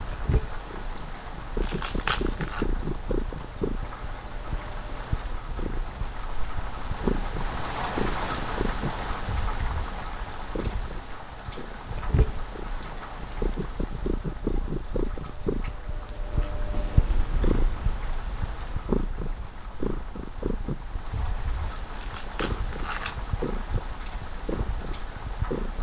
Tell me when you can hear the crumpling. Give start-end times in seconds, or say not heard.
1.6-2.6, 21.9-23.2.